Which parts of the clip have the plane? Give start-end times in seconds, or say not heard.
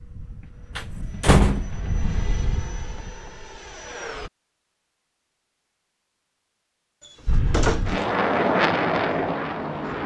0.0-4.3, 7.2-10.0.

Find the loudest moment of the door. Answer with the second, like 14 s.
1 s.